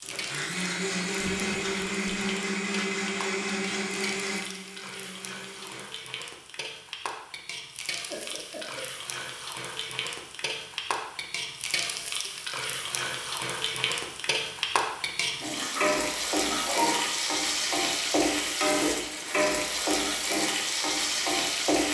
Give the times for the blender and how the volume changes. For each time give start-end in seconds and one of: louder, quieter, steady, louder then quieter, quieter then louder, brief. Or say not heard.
0.0-5.8 quieter.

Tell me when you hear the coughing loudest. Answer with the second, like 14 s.
17 s.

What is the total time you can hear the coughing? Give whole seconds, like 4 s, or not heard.
3 s.